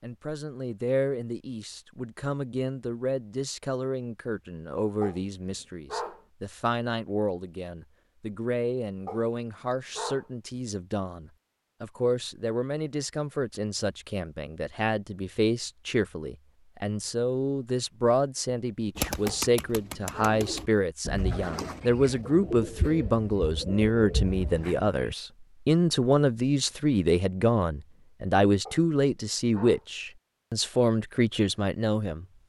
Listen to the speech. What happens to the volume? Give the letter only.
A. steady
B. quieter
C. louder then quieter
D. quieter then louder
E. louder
E.